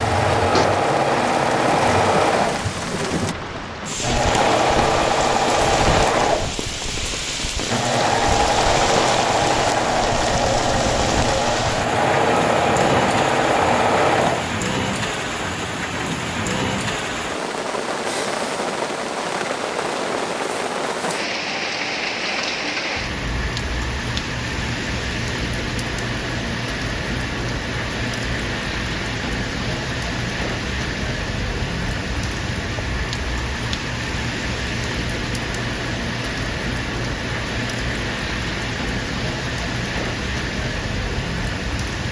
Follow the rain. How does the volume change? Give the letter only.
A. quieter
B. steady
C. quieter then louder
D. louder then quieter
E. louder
B.